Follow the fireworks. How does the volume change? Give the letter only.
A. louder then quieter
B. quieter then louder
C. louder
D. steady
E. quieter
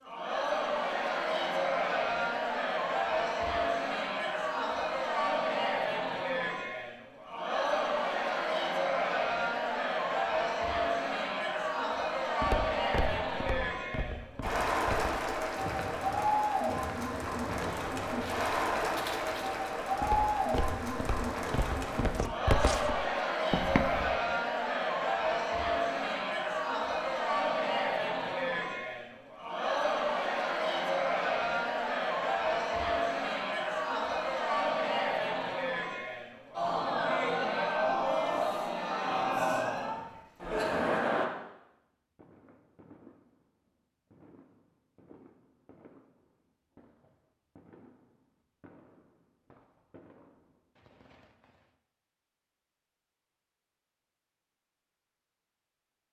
D.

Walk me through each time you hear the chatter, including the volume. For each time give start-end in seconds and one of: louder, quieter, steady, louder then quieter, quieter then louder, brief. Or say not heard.
0.0-41.3 steady.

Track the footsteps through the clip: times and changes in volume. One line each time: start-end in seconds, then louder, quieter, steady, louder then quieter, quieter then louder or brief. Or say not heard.
12.4-24.1 louder.